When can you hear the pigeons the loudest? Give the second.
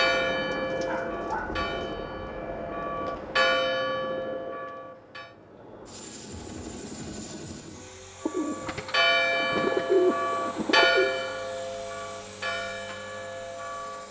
10 s.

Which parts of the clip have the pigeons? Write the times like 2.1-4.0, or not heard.
0.5-1.9, 8.2-11.2.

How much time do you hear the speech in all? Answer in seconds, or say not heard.
not heard.